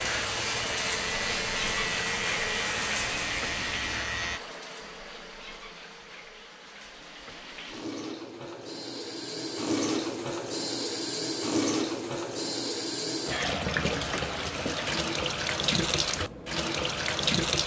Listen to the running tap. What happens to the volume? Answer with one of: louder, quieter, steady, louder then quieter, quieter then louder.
quieter then louder.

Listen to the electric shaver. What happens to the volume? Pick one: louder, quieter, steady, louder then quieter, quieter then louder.
steady.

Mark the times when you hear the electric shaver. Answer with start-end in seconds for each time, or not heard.
0.0-4.4.